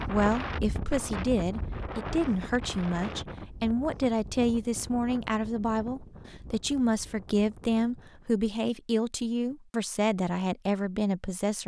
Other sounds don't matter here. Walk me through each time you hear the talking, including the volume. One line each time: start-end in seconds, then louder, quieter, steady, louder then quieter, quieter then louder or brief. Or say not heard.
0.1-11.6 steady.